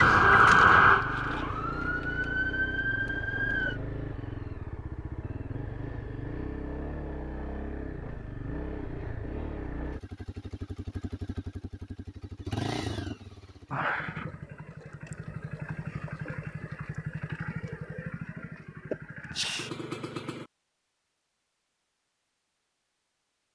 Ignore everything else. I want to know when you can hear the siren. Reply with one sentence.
The siren can be heard from 0.0 to 3.8 s.